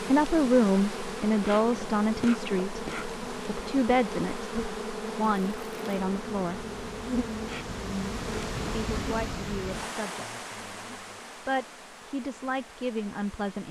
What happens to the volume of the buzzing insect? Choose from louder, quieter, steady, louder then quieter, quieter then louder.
quieter.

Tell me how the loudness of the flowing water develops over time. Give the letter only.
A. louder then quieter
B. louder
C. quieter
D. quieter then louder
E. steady
A.